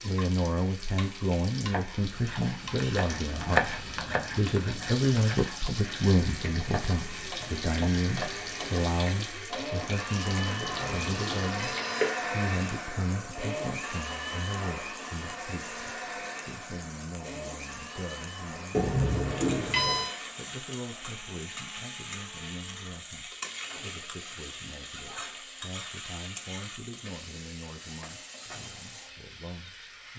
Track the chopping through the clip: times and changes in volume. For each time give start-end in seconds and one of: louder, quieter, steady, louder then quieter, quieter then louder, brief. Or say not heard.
1.6-8.8 louder then quieter.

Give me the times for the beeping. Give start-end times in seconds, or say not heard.
10.6-12.1, 18.7-20.1.